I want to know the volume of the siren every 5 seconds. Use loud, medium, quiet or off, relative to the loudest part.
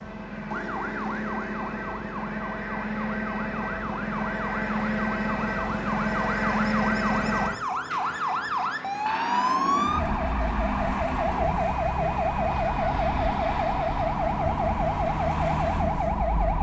medium, loud, loud, loud.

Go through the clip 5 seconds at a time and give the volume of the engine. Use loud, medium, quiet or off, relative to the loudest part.
loud, loud, medium, medium.